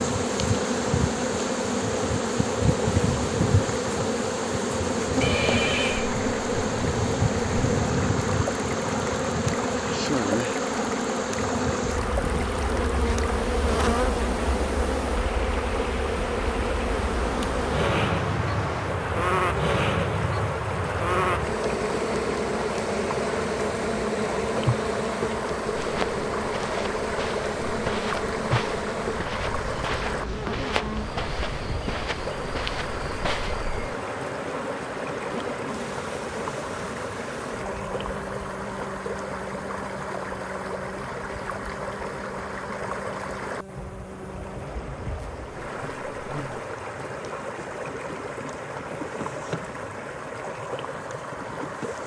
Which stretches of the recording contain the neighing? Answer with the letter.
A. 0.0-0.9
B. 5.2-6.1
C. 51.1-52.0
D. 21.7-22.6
B.